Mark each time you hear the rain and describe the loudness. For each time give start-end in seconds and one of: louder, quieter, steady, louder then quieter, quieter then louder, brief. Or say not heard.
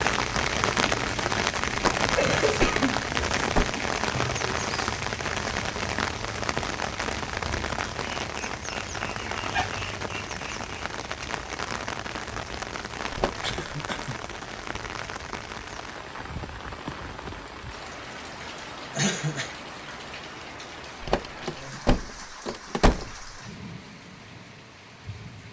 0.0-25.4 quieter.